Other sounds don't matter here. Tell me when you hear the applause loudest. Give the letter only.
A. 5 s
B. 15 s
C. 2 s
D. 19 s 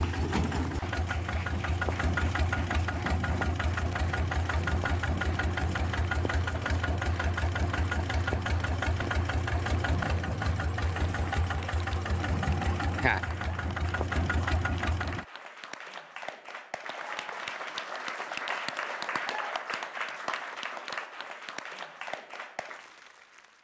D.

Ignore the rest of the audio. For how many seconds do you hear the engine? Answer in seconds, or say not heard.
15 s.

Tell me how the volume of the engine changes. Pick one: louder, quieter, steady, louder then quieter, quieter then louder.
steady.